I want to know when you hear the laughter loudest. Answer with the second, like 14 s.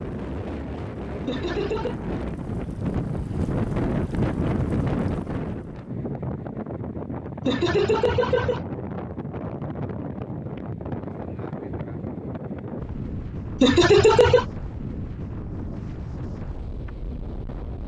14 s.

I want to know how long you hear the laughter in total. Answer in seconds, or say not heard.
3 s.